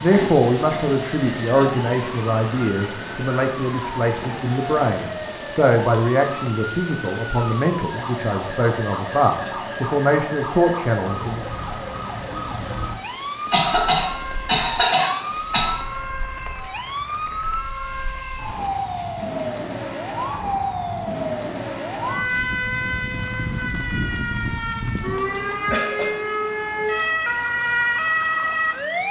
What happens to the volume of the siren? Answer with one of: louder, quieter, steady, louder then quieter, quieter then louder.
louder.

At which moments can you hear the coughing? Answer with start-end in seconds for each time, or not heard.
0.1-0.8, 13.5-15.8, 25.7-26.1.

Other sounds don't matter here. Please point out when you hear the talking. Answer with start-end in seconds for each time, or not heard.
0.0-11.4.